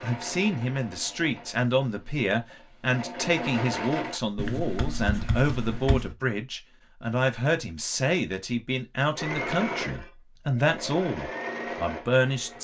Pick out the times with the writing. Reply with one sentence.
You can hear the writing from 4.3 to 6.2 s.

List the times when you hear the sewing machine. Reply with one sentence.
The sewing machine can be heard from 0.0 to 4.2 s and from 9.1 to 12.5 s.